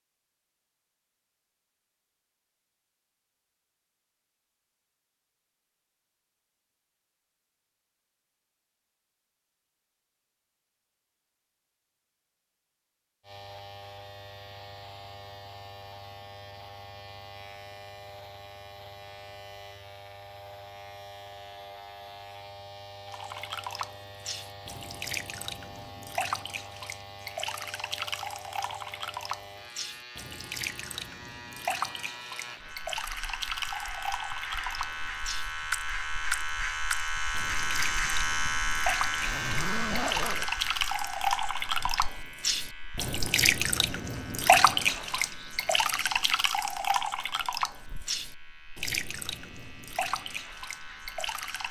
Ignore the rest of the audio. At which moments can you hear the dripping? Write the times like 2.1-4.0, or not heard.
23.1-51.6.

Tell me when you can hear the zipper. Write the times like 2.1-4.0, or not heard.
39.2-40.5.